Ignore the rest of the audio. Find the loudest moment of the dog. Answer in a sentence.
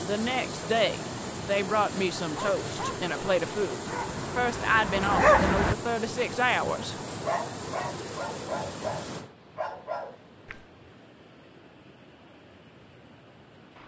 The volume of the dog peaks at 5 seconds.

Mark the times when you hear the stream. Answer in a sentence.
The stream can be heard from 0.0 to 13.8 s.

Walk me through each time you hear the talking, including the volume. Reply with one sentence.
The talking can be heard from 0.0 to 7.0 s, at a steady volume.